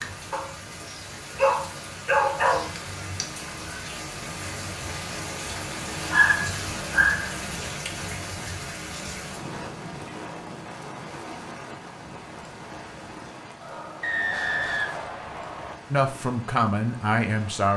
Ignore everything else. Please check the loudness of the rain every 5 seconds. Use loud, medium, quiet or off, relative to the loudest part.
loud, loud, medium, medium.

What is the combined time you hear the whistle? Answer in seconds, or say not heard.
2 s.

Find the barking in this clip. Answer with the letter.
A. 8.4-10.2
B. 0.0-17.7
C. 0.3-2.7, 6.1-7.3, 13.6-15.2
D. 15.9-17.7
C.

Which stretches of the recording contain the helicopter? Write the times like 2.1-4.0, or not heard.
not heard.